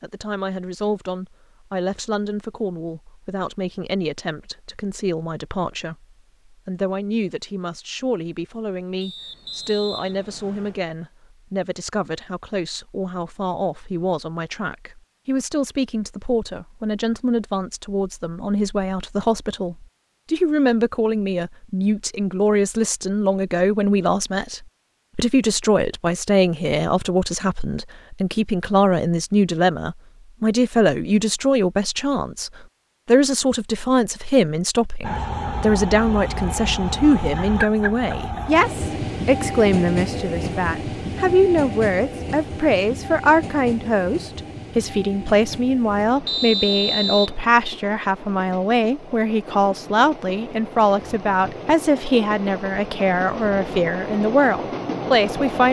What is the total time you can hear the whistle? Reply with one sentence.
You can hear the whistle for 3 seconds altogether.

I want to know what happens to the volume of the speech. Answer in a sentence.
The volume of the speech goes up.